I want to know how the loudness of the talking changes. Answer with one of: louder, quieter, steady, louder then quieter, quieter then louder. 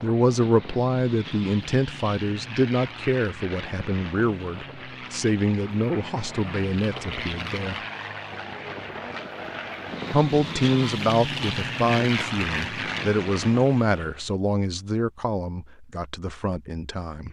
quieter.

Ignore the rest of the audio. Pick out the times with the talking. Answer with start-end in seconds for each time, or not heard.
0.0-7.8, 10.1-17.2.